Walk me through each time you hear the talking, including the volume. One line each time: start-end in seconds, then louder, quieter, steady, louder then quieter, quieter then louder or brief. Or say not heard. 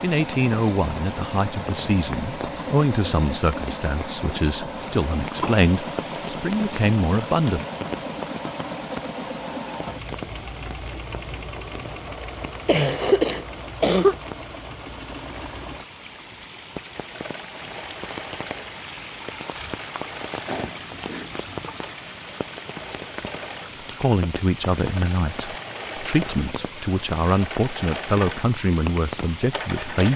0.0-7.7 steady
24.0-30.1 steady.